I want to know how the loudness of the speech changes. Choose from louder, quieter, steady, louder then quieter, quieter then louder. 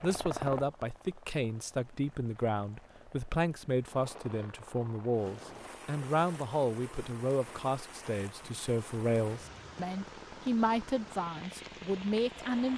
steady.